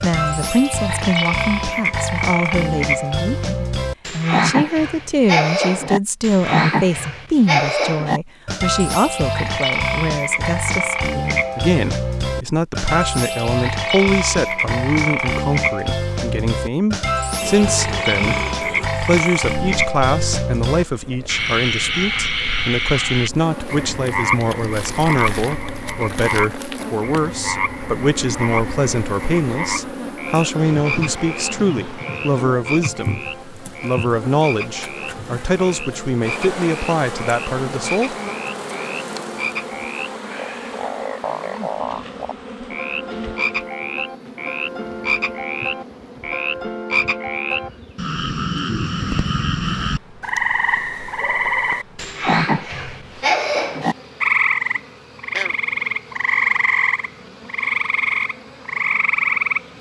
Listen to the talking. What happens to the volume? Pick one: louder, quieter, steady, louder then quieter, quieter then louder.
steady.